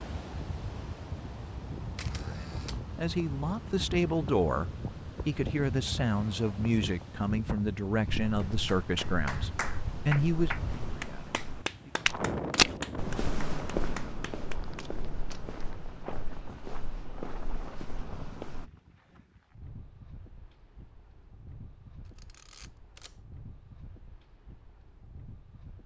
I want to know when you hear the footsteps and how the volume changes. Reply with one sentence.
The footsteps can be heard from 8.2 to 18.7 s, getting louder then quieter.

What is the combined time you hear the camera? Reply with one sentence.
The camera can be heard for 3 seconds in total.